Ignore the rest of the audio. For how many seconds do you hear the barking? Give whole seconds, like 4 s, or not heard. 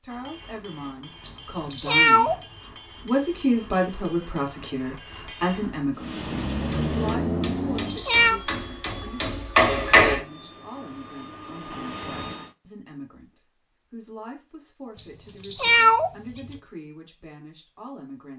not heard.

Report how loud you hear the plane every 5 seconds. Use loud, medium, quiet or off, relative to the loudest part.
off, loud, medium, off.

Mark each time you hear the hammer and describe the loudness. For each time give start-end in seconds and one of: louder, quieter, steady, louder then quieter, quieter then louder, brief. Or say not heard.
0.1-10.2 louder.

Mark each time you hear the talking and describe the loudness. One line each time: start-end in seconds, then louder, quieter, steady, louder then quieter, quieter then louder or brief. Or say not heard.
0.0-2.4 brief
3.0-18.3 quieter.